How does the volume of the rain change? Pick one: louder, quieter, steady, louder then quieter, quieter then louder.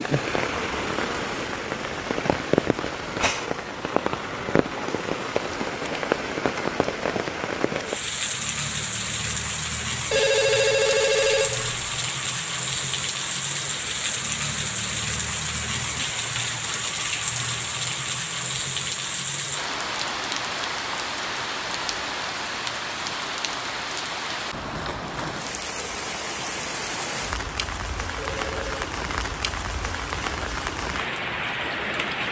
steady.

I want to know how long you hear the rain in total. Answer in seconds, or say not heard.
32 s.